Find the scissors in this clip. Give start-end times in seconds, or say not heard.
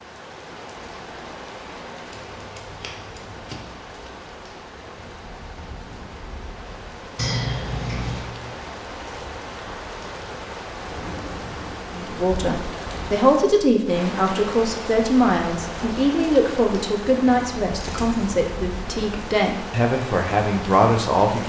2.1-3.5, 7.2-8.3, 17.8-18.4.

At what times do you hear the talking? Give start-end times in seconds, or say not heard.
11.9-21.4.